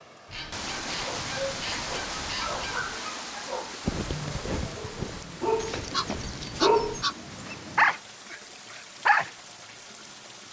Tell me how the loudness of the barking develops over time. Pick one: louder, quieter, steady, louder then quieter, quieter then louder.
louder.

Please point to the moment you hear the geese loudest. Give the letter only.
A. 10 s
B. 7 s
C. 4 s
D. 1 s
B.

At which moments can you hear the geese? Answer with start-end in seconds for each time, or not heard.
0.2-3.0, 5.5-8.0.